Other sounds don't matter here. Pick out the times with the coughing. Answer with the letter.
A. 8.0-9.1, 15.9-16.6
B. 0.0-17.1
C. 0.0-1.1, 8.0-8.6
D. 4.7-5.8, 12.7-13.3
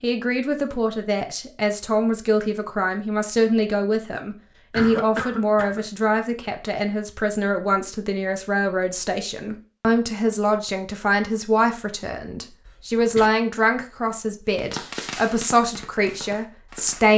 D.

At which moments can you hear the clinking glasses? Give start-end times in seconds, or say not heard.
not heard.